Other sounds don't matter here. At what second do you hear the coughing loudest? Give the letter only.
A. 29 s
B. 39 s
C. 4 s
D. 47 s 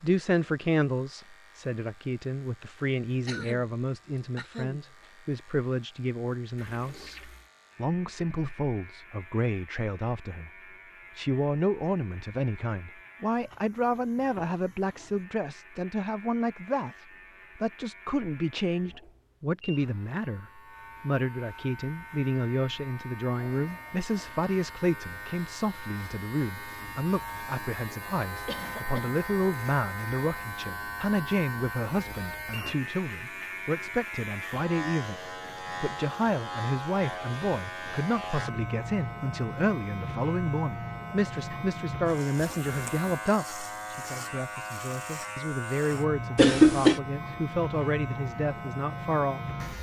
D.